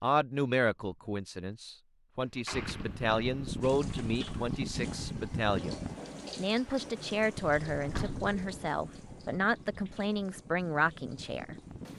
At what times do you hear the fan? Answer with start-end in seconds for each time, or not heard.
2.5-11.9.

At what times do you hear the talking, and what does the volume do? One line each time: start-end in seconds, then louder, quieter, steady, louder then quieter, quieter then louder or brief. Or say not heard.
0.0-11.6 steady.